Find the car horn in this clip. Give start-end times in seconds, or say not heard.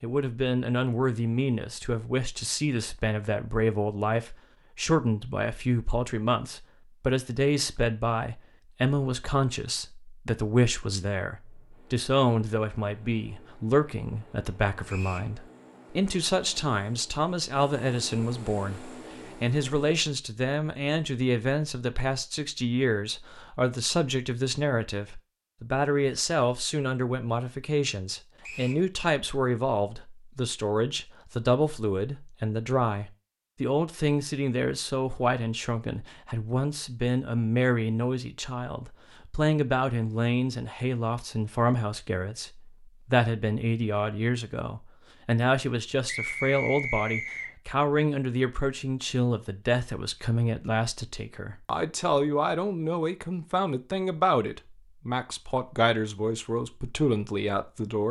not heard.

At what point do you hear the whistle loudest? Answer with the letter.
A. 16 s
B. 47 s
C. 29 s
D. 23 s
B.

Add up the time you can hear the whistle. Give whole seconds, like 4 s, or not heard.
2 s.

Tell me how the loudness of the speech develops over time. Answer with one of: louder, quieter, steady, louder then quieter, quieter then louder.
steady.